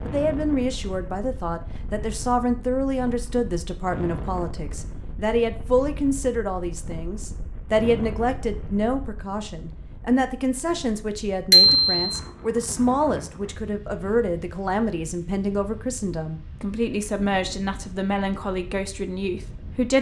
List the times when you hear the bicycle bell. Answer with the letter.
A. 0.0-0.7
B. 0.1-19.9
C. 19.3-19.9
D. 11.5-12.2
D.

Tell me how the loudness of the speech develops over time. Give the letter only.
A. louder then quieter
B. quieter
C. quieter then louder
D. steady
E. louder
D.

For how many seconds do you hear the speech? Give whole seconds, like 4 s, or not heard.
20 s.